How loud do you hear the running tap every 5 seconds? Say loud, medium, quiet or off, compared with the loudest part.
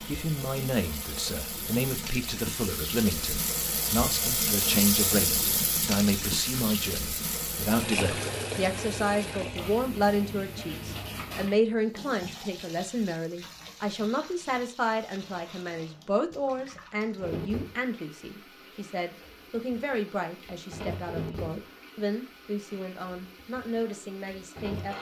loud, loud, medium, quiet, medium.